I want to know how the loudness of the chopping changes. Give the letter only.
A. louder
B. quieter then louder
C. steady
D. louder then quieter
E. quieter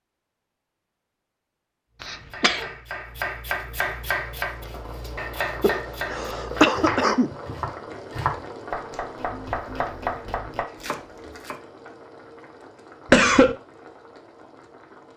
C.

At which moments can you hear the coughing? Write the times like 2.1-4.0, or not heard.
2.0-2.7, 5.6-7.3, 13.1-13.6.